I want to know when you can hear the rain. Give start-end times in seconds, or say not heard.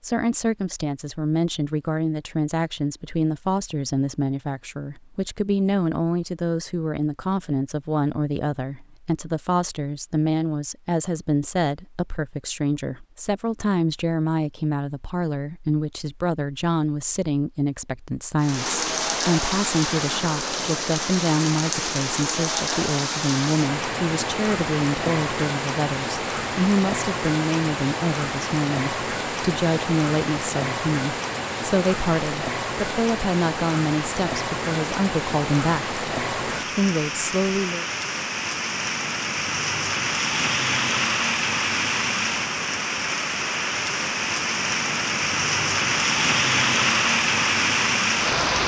18.4-48.6.